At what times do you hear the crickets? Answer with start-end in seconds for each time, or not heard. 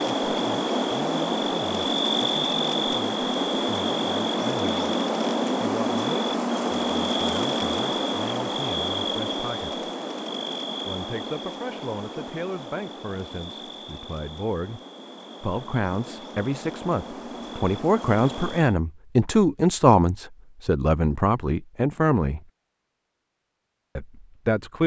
0.0-18.8.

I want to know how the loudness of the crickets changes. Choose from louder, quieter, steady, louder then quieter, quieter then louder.
quieter.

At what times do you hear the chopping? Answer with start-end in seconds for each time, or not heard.
not heard.